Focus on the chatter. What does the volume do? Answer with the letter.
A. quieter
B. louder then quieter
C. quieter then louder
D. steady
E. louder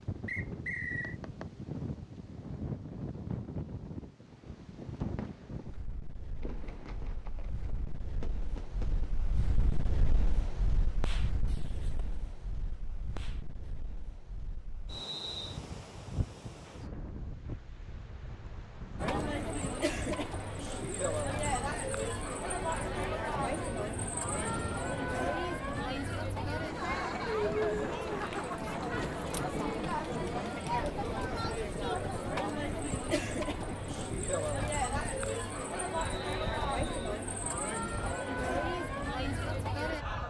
D.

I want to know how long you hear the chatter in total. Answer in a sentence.
The chatter can be heard for 21 seconds in total.